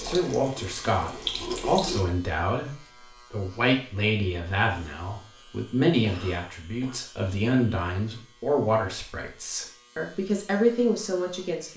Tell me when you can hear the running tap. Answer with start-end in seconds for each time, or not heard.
0.0-2.0.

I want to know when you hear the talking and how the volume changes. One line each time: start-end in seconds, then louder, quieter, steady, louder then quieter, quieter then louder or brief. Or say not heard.
0.0-11.7 steady.